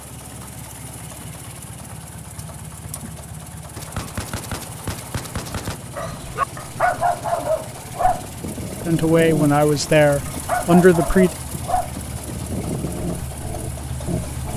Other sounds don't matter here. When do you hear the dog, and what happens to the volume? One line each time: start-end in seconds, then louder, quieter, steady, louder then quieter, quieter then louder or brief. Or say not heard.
6.0-14.5 quieter.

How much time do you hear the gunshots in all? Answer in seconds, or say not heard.
2 s.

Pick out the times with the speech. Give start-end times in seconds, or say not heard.
8.8-11.3.